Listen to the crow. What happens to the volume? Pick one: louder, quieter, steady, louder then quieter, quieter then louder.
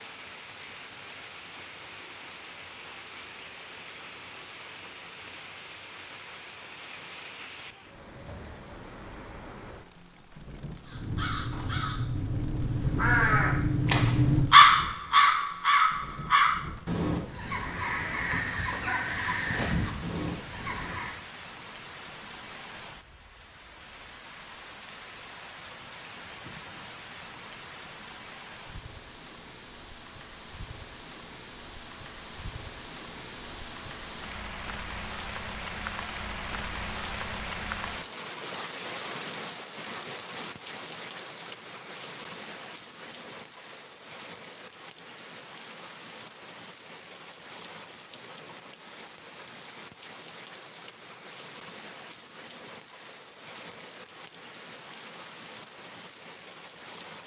louder then quieter.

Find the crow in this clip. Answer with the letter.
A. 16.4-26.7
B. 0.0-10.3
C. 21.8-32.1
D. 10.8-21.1
D.